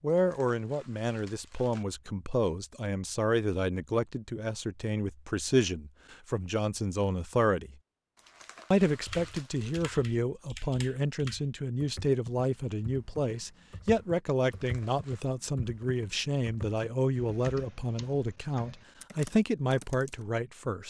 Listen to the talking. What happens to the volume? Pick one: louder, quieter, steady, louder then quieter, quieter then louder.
steady.